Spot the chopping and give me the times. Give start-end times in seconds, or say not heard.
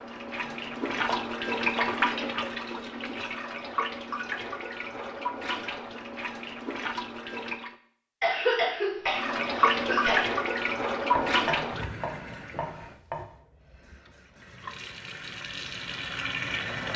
0.9-1.9, 11.2-13.3.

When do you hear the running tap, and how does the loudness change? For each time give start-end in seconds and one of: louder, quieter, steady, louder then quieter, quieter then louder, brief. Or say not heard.
0.0-7.8 quieter
9.1-16.9 quieter then louder.